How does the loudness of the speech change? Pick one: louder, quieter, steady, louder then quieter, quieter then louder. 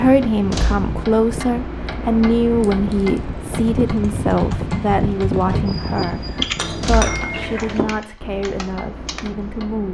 quieter.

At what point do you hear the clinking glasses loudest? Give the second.
7 s.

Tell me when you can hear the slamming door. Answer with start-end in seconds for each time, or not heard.
0.5-1.0, 6.8-7.2.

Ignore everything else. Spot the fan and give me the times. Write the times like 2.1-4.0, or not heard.
0.0-6.8.